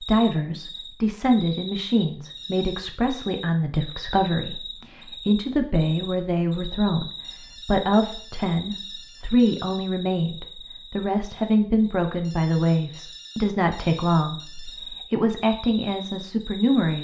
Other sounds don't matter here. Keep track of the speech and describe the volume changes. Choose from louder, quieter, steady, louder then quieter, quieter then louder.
steady.